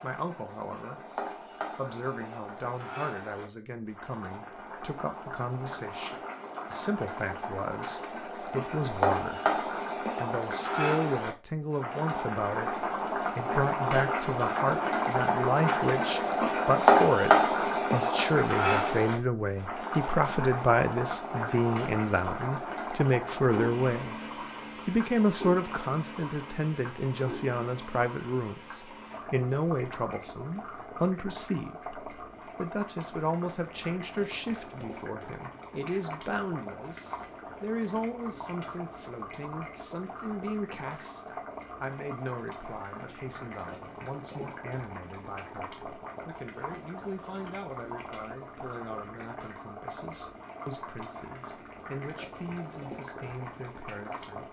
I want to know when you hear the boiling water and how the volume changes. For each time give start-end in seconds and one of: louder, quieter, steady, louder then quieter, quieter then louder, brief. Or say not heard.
0.0-54.4 louder then quieter.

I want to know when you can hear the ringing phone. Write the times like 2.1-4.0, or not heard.
not heard.